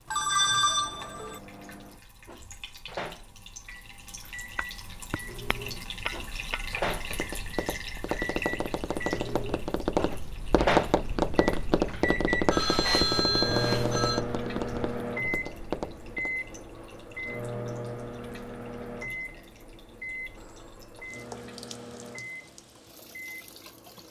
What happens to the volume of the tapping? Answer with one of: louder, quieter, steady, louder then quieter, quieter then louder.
louder then quieter.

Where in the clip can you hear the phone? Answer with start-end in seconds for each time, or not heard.
0.1-1.4, 12.5-14.2, 20.4-21.5.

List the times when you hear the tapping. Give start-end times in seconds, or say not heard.
4.5-16.3.